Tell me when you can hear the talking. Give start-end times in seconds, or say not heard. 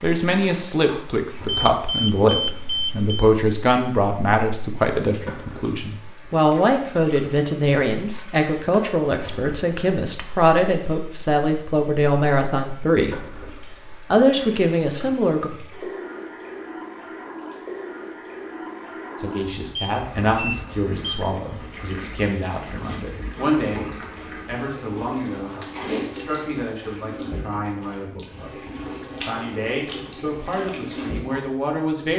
0.0-15.5, 19.1-32.1.